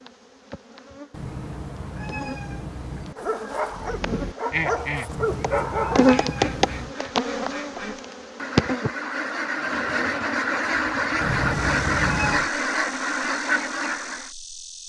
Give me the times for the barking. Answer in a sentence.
You can hear the barking from 3.1 to 6.2 s.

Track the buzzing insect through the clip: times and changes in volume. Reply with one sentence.
You can hear the buzzing insect from 0.0 to 14.8 s, getting louder then quieter.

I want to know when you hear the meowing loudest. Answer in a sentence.
The volume of the meowing peaks at 12 seconds.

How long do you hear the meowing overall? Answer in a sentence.
The meowing can be heard for 5 seconds in total.